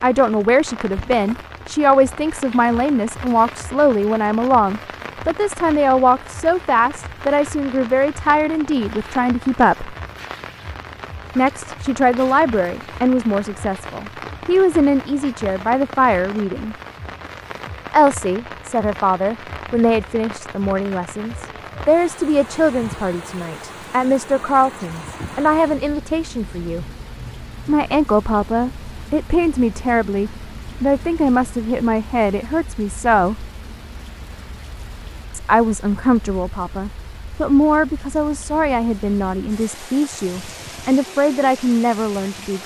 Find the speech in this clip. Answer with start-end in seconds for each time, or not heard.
0.0-9.9, 11.3-16.8, 17.9-26.9, 27.6-33.5, 35.3-42.6.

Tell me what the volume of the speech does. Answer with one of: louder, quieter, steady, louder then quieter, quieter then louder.
steady.